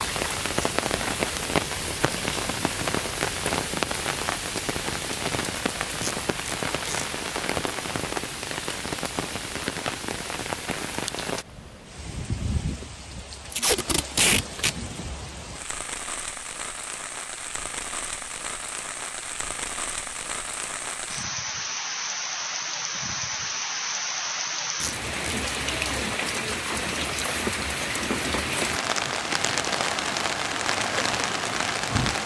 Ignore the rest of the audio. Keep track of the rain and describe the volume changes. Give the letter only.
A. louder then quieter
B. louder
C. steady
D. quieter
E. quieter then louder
E.